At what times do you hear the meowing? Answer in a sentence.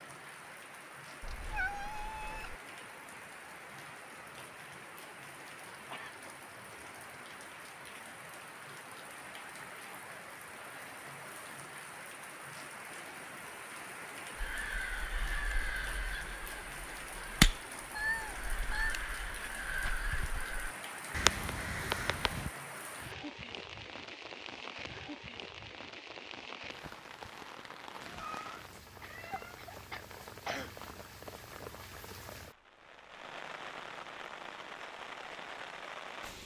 You can hear the meowing from 1.2 to 2.5 s, from 17.9 to 18.9 s and from 28.1 to 29.7 s.